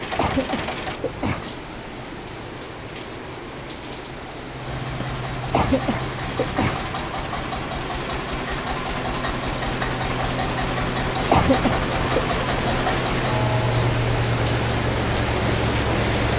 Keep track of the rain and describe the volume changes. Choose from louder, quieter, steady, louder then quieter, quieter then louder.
louder.